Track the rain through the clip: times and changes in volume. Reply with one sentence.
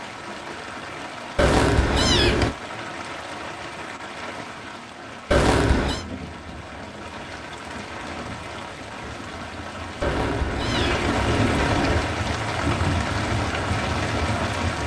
You can hear the rain from 0.0 to 14.8 s, getting louder.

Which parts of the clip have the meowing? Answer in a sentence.
You can hear the meowing from 1.4 to 2.5 s, from 5.3 to 6.0 s and from 10.0 to 12.1 s.